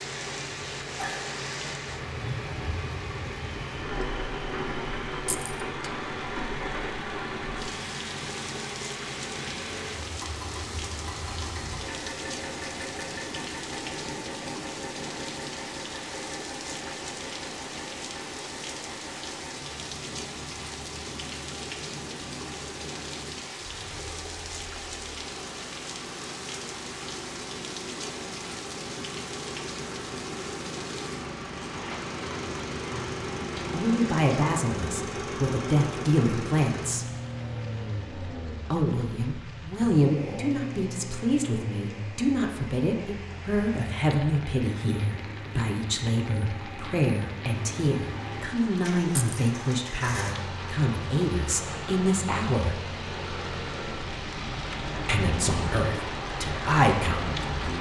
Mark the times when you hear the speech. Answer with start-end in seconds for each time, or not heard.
33.7-37.0, 38.7-52.8, 55.0-57.7.